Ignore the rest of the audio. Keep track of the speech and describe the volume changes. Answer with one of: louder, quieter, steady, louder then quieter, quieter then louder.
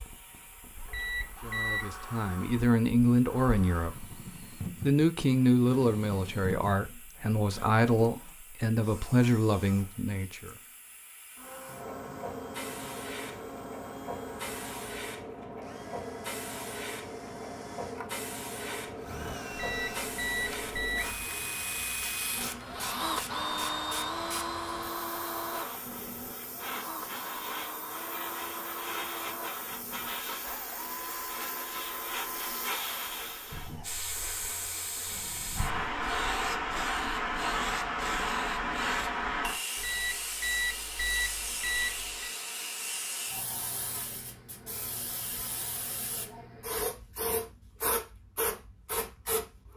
steady.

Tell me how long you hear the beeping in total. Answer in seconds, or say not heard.
5 s.